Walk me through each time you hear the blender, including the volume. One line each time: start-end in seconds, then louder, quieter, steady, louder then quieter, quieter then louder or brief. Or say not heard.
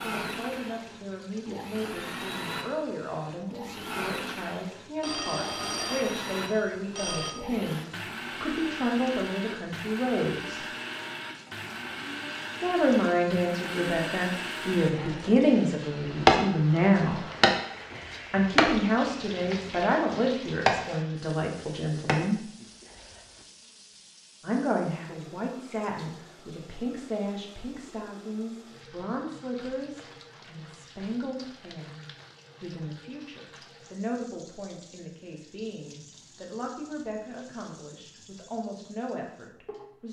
0.0-15.3 steady.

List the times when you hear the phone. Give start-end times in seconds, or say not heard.
5.0-7.3.